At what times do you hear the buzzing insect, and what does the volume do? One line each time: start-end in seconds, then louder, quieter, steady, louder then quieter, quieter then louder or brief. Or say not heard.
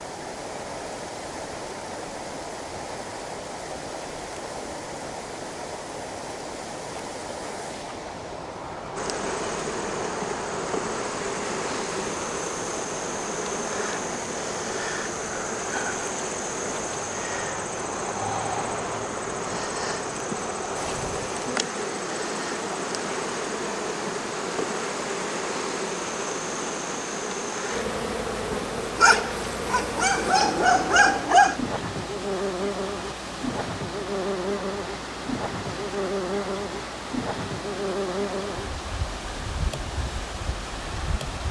8.9-41.4 steady.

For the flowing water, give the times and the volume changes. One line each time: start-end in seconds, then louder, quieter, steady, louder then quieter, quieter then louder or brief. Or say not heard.
0.0-41.4 steady.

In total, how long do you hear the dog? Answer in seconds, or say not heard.
3 s.